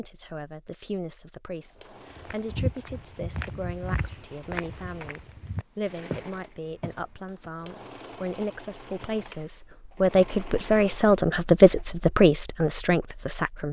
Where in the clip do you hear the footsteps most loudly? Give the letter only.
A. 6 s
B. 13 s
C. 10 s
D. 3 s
D.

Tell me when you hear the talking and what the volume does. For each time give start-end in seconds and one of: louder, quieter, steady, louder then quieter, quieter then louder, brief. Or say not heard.
0.0-13.6 louder.